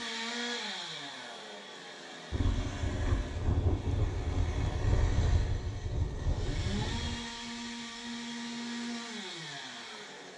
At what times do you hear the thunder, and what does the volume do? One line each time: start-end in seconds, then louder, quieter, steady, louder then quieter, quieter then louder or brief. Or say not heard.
2.3-7.2 steady.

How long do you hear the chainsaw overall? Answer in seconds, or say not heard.
10 s.